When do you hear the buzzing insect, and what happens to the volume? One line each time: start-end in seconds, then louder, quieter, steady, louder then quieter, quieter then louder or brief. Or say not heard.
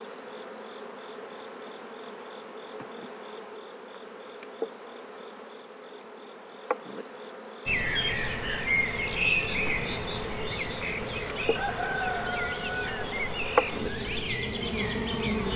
0.0-15.5 louder.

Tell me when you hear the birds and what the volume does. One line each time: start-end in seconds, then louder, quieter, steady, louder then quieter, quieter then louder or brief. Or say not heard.
7.7-15.5 quieter.